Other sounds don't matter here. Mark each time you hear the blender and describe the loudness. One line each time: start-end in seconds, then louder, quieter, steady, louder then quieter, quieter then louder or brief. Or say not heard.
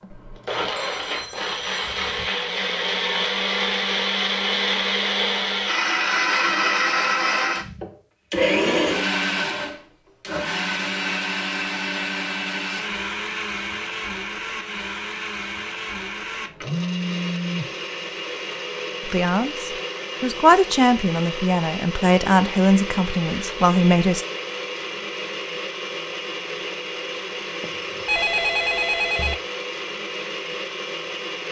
0.0-31.4 quieter.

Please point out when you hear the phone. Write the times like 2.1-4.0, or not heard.
0.8-2.3, 16.6-17.7, 27.6-29.4.